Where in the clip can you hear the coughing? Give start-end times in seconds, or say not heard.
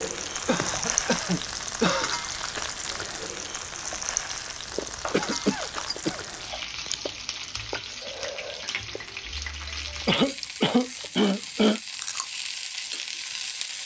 0.5-2.1, 5.1-6.2, 10.1-11.8.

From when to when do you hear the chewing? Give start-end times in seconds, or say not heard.
4.7-12.5.